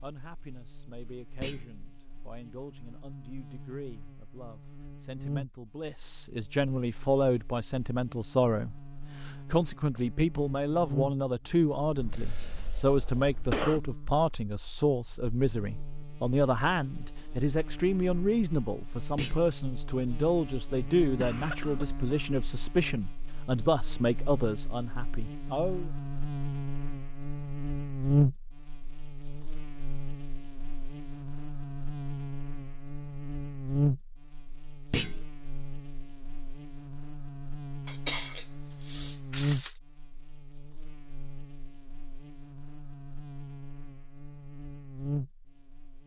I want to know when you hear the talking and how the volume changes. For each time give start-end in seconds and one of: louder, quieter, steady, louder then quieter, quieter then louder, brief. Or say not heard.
0.0-25.9 louder.